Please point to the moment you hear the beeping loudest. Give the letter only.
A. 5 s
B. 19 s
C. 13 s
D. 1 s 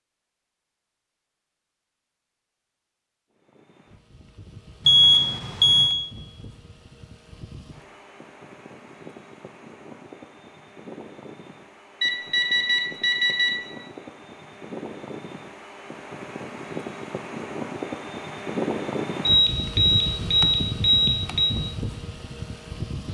A.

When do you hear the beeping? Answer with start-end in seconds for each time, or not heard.
4.8-6.0, 12.0-13.6, 19.2-21.6.